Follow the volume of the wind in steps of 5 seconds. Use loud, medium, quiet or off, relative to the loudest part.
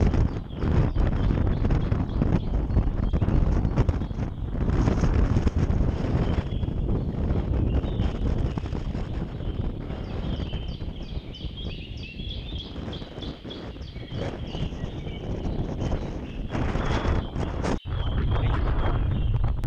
loud, loud, medium, loud.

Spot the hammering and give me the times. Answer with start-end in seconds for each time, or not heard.
not heard.